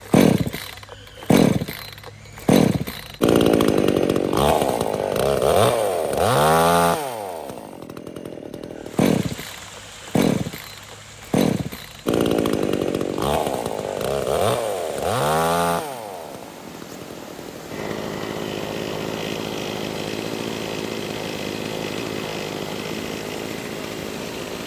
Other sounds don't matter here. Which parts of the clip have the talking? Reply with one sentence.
The talking can't be heard in this clip.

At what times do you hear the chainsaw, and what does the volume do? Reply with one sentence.
The chainsaw can be heard from 0.1 to 24.6 s, getting quieter.